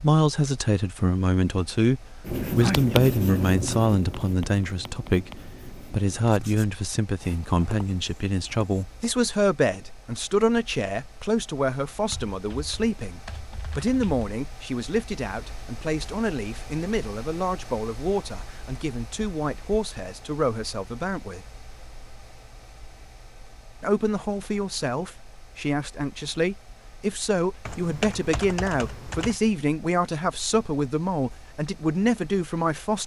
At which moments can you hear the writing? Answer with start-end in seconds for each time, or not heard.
2.2-9.1.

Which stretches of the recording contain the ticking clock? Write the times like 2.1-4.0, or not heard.
not heard.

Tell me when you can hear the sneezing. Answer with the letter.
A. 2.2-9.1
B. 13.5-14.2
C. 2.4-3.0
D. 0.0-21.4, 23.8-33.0
C.